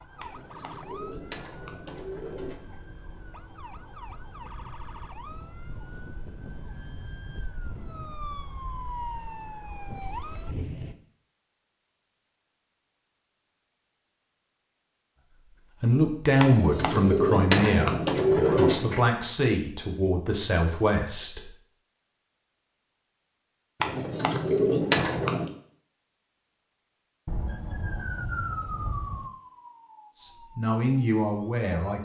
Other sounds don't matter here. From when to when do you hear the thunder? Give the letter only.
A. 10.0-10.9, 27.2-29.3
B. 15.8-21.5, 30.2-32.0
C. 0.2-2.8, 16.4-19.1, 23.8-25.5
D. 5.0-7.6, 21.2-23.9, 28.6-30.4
A.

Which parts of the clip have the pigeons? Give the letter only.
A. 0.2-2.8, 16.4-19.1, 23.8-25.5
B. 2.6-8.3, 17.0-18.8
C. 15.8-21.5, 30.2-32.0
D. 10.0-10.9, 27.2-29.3
A.